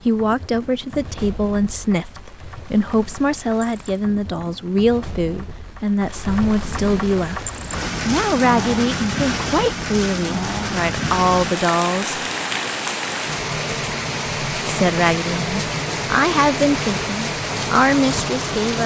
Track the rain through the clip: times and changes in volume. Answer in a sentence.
The rain can be heard from 0.0 to 18.8 s, getting louder.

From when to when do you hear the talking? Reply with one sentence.
You can hear the talking from 0.1 to 7.4 s, from 8.1 to 12.2 s and from 14.7 to 18.8 s.